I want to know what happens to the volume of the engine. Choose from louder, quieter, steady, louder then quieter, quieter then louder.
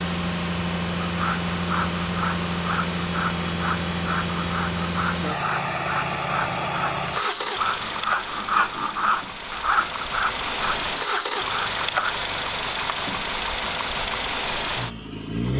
steady.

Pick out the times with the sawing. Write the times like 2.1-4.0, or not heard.
1.1-12.2.